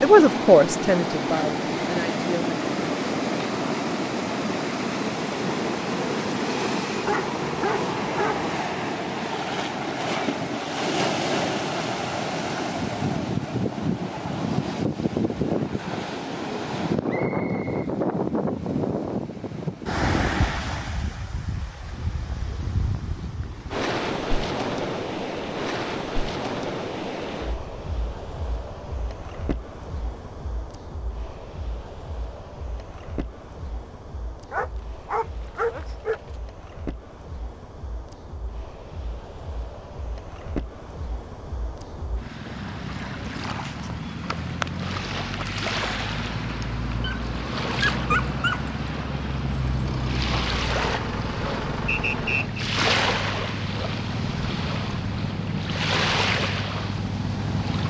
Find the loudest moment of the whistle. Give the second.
52 s.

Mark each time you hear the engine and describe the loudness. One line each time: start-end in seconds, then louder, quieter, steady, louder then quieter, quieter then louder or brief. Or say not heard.
49.4-57.5 steady.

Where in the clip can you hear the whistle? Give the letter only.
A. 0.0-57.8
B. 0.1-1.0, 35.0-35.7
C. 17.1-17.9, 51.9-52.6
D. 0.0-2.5
C.